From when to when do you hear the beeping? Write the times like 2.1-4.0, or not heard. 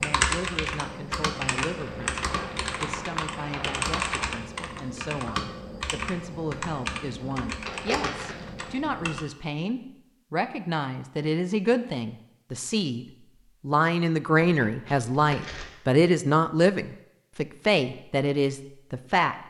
not heard.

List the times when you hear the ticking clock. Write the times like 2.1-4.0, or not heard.
not heard.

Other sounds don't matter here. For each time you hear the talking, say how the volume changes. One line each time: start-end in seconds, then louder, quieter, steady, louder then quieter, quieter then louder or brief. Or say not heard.
0.0-19.4 louder.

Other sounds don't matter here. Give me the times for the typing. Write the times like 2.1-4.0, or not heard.
0.0-9.2.